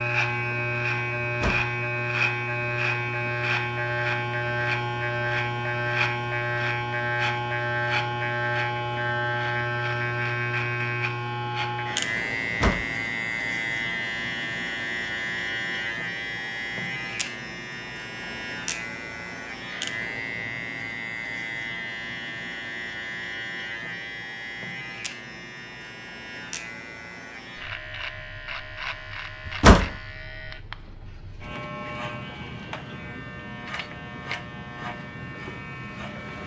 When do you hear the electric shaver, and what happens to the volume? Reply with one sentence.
The electric shaver can be heard from 0.0 to 36.4 s, getting quieter.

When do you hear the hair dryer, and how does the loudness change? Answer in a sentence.
The hair dryer can't be heard in this clip.